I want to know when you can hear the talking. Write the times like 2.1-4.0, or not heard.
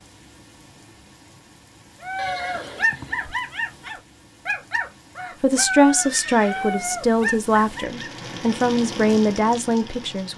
5.4-10.3.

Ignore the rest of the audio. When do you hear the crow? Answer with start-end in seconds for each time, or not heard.
not heard.